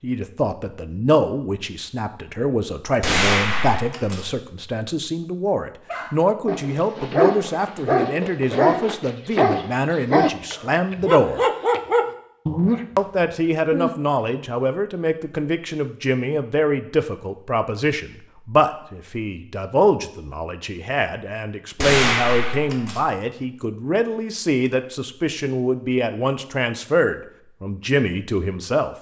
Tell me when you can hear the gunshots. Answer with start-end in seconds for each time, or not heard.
3.0-4.3, 21.8-23.1.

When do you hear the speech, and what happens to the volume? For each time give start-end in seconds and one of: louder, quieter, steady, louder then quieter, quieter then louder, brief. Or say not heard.
0.0-11.4 steady
12.9-28.9 steady.